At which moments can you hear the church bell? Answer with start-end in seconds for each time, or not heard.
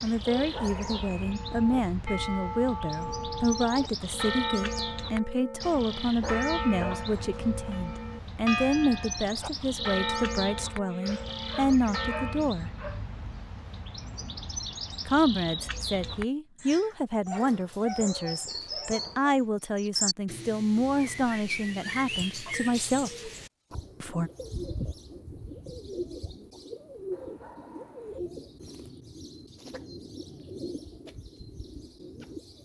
1.2-12.5.